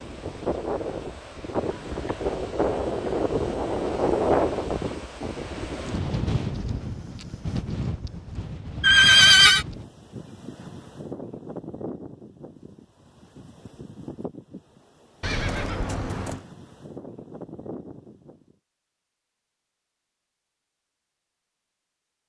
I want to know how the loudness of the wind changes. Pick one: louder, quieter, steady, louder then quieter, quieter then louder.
quieter.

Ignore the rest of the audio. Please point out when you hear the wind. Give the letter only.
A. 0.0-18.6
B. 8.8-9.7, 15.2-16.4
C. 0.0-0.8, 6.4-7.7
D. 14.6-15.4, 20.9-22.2
A.